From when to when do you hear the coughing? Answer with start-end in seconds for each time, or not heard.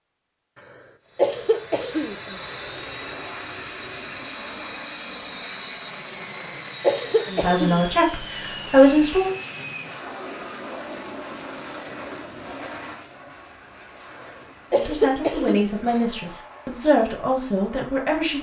1.1-2.5, 6.8-7.8, 14.7-16.1.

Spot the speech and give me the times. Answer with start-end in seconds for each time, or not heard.
7.3-9.3, 14.7-18.3.